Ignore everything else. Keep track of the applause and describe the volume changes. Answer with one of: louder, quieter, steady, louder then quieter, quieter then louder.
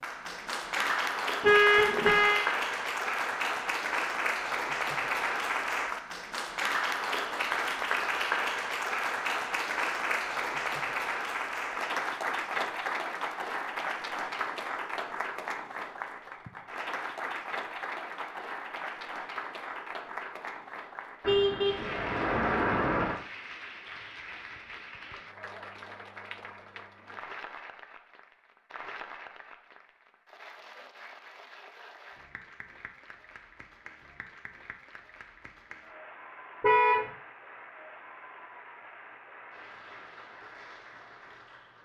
quieter.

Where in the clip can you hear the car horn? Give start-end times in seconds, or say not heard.
1.4-2.5, 21.2-23.1, 36.6-37.0.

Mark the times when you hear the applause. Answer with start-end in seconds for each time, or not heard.
0.0-41.8.